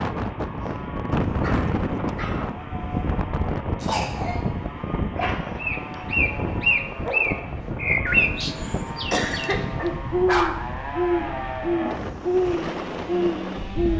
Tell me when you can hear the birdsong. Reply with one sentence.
You can hear the birdsong from 5.6 to 13.9 s.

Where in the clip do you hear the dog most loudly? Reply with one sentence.
The loudest moment of the dog is at 10 seconds.